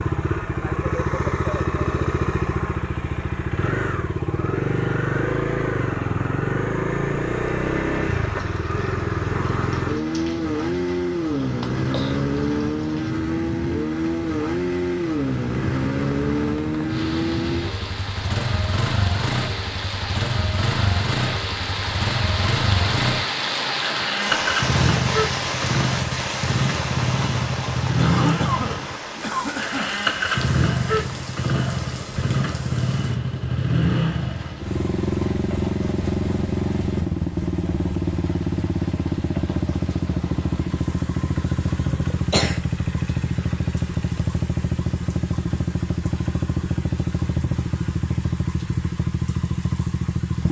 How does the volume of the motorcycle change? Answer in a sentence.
The loudness of the motorcycle stays about the same.